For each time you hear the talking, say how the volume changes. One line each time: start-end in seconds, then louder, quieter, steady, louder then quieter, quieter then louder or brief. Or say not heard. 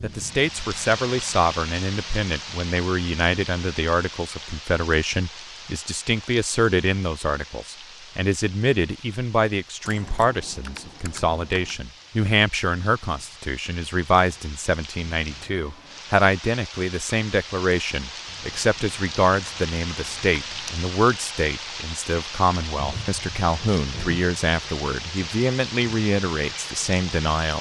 0.0-27.5 steady.